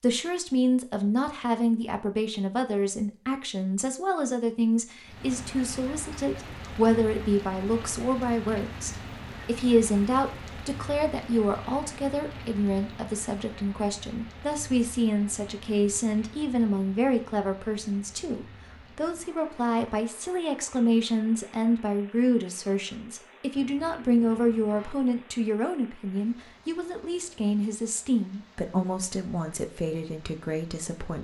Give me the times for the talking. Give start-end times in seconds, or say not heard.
0.0-31.2.